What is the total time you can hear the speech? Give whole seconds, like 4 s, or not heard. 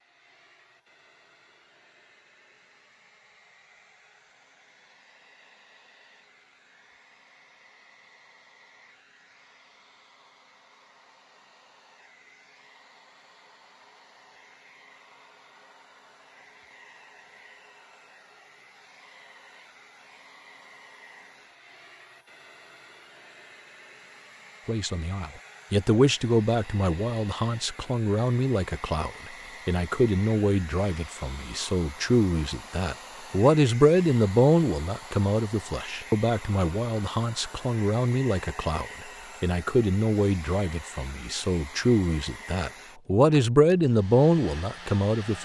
21 s.